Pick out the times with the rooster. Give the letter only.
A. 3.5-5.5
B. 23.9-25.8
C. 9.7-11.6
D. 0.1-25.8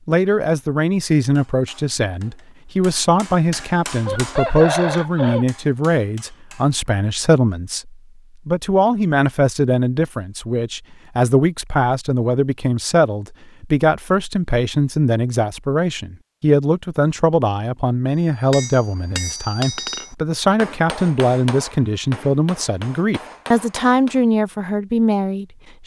A.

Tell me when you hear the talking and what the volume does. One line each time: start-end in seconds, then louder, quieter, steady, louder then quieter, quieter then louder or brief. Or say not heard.
0.1-25.8 steady.